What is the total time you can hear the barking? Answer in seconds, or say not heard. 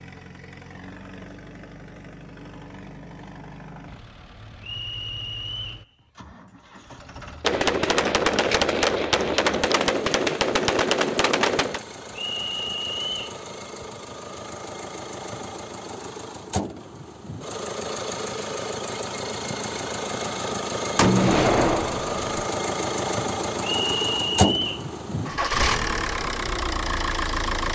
not heard.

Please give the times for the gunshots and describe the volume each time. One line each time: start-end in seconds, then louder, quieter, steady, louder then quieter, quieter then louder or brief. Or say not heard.
7.4-11.8 steady
20.9-22.2 brief.